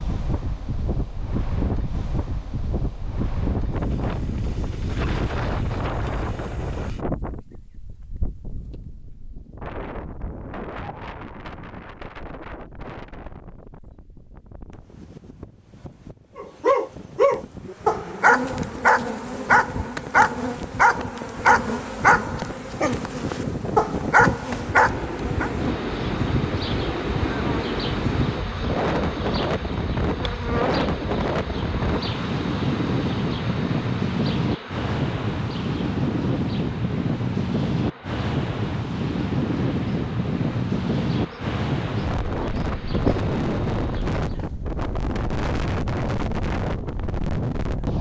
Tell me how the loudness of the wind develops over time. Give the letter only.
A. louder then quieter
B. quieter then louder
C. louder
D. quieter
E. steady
B.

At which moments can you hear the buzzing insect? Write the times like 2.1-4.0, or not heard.
17.6-44.2.